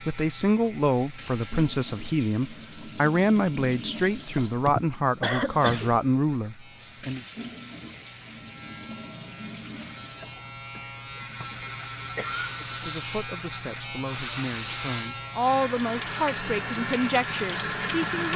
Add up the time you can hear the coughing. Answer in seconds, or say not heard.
4 s.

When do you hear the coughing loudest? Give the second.
5 s.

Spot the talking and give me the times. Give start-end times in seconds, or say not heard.
0.1-7.2, 12.8-18.3.